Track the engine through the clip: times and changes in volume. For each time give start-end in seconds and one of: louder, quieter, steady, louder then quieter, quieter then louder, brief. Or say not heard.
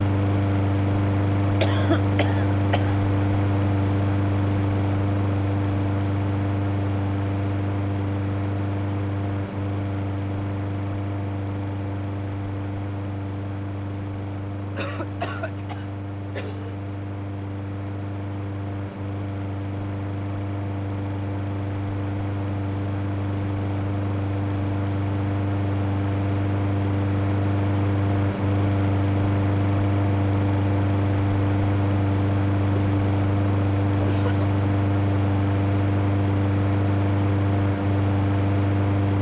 0.0-39.1 quieter then louder.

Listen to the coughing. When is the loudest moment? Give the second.
2 s.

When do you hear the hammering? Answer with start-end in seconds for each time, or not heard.
not heard.